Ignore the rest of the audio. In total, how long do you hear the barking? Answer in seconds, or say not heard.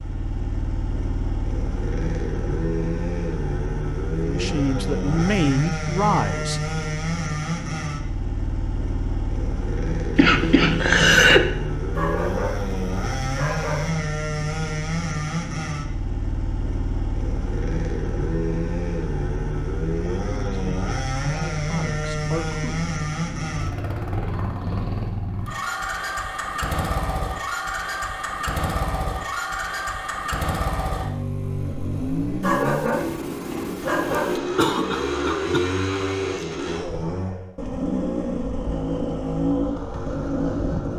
4 s.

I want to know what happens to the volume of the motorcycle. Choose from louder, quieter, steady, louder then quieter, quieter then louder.
steady.